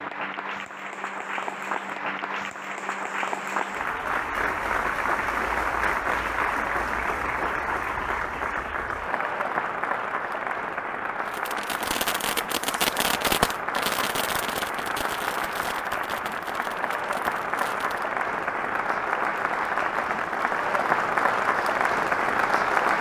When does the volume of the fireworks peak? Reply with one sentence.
The volume of the fireworks peaks at 13 seconds.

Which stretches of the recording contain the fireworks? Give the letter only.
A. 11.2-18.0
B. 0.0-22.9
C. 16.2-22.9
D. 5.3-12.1
A.